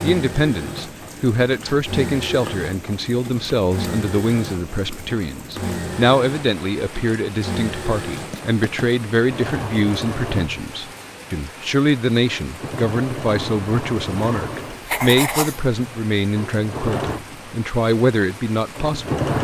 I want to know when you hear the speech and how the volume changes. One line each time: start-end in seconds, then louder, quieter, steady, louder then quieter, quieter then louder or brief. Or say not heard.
0.0-19.2 steady.